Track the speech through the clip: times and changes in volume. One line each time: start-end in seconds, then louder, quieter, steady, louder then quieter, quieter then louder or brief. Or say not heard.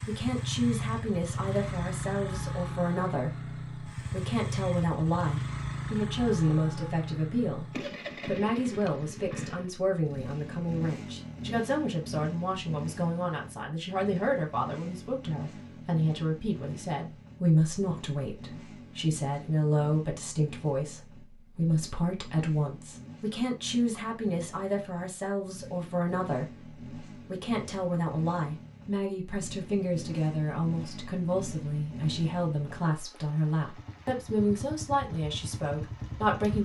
0.1-36.6 steady.